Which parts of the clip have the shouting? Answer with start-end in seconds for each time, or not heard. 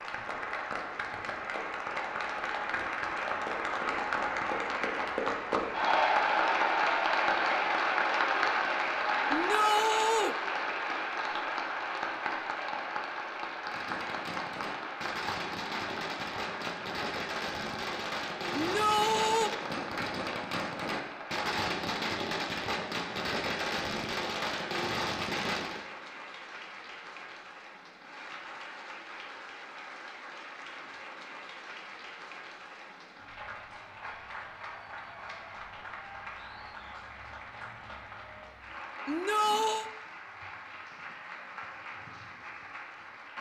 9.3-10.3, 18.5-19.5, 39.0-39.9.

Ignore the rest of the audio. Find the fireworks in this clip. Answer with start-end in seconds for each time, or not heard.
13.7-25.8.